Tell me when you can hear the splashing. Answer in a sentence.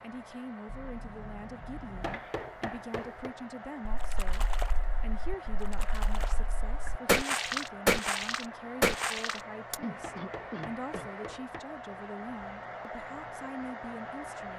The splashing can be heard from 3.9 to 9.8 s.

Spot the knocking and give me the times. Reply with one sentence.
You can hear the knocking from 2.0 to 3.4 s and from 10.0 to 11.7 s.